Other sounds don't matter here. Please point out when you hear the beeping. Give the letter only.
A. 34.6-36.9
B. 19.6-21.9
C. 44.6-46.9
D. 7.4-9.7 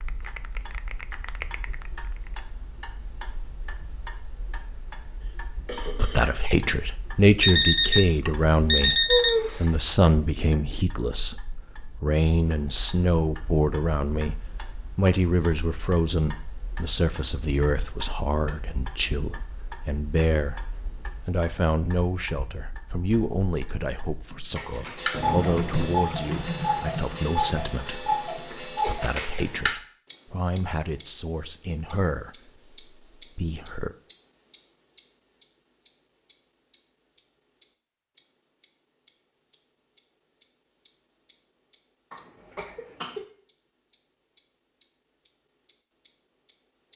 D.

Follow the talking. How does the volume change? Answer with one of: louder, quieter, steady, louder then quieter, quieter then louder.
quieter.